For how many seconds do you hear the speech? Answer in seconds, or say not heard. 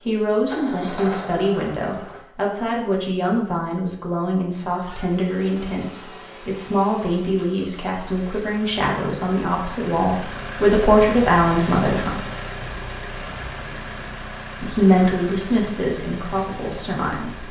15 s.